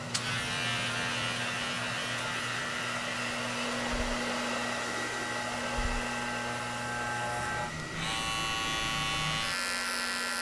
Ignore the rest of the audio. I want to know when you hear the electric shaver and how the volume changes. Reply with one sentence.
The electric shaver can be heard from 0.0 to 10.3 s, getting quieter then louder.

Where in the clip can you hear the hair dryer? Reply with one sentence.
You can hear the hair dryer from 0.0 to 10.3 s.